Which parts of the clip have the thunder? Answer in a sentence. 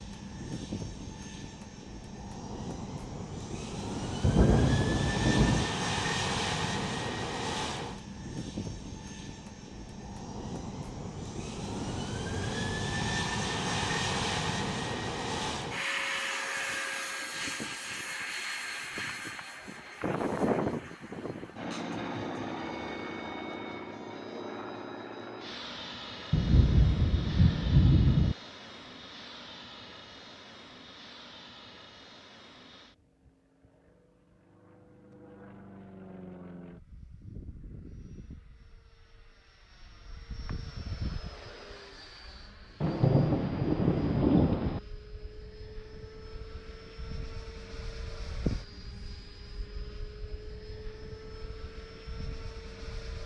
The thunder can be heard from 4.2 to 5.7 s, from 26.3 to 28.4 s and from 42.8 to 44.8 s.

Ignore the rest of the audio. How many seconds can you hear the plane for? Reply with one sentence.
You can hear the plane for 53 seconds altogether.